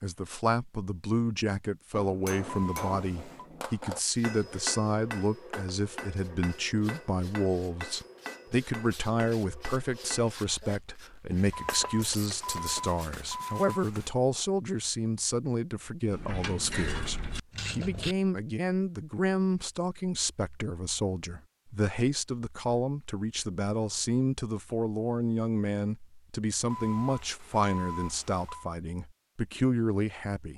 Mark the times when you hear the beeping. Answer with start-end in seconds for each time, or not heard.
2.5-3.5, 11.5-14.1, 26.7-28.7.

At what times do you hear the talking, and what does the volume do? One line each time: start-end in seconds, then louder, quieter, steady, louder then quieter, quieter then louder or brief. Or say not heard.
0.0-30.5 steady.